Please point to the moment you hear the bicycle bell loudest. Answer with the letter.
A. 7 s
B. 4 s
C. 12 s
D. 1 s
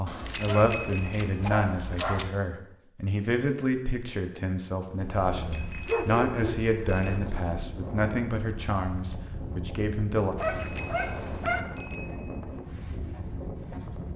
D.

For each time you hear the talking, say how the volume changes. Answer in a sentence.
The talking can be heard from 0.0 to 10.3 s, at a steady volume.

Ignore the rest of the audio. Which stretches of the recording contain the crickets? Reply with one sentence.
You can't hear the crickets here.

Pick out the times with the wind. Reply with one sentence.
You can hear the wind from 4.8 to 14.1 s.